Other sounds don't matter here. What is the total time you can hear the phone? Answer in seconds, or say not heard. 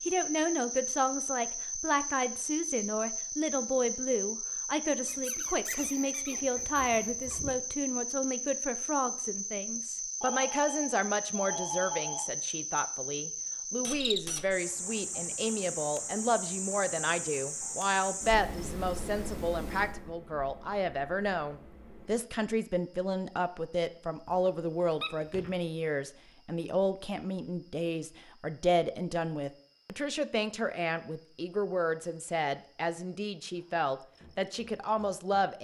2 s.